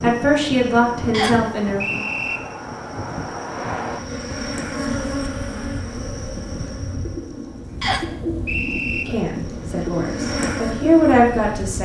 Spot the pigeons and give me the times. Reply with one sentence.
The pigeons can be heard from 5.8 to 11.6 s.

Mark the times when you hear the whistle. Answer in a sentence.
The whistle can be heard from 1.1 to 2.4 s and from 7.8 to 9.1 s.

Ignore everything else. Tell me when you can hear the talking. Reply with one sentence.
The talking can be heard from 0.0 to 1.9 s and from 9.1 to 11.8 s.